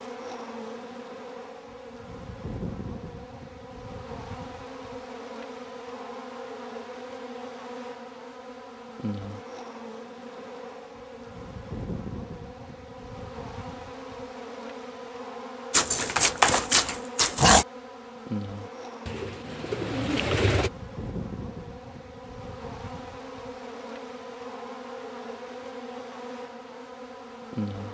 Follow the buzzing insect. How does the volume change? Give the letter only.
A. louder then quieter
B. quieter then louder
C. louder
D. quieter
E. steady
E.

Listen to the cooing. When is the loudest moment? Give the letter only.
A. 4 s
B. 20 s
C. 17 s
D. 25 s
B.